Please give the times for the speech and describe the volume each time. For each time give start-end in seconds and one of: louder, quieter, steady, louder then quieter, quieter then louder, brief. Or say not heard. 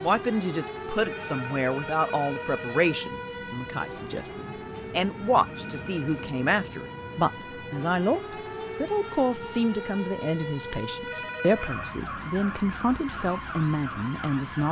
0.0-14.6 steady.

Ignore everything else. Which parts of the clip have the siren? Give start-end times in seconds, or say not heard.
0.0-14.6.